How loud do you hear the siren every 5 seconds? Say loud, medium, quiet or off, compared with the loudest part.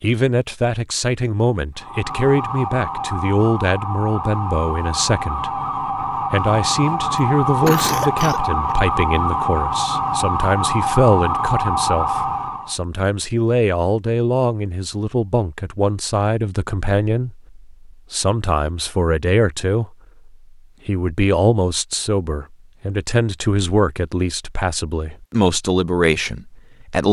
medium, loud, loud, off, off, off.